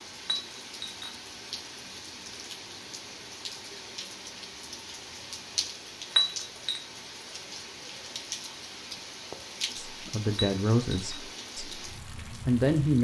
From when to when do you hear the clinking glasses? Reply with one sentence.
You can hear the clinking glasses from 0.2 to 1.1 s, from 6.1 to 6.8 s and from 10.3 to 11.2 s.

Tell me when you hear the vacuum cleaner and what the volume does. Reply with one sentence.
You can't hear the vacuum cleaner here.